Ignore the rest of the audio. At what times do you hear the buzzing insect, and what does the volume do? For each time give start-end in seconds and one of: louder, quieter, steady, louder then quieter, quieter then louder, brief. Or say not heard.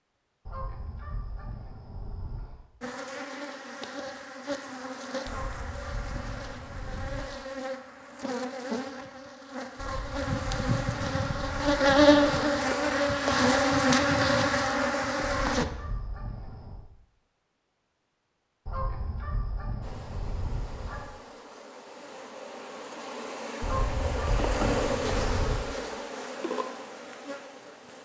2.8-15.7 louder
19.8-27.9 louder then quieter.